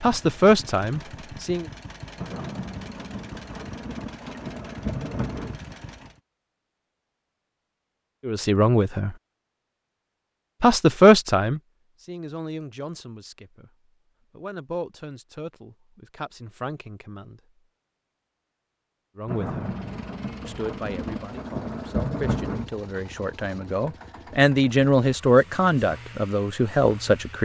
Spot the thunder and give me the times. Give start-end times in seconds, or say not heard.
2.1-5.5, 19.2-22.6.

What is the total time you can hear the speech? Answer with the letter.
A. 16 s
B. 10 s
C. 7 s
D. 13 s
A.